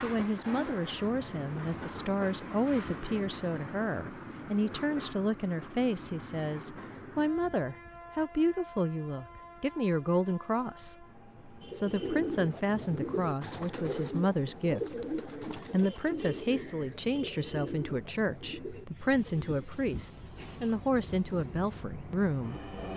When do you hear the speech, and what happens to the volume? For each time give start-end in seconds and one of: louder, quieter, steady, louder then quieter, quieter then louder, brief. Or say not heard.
0.0-22.9 steady.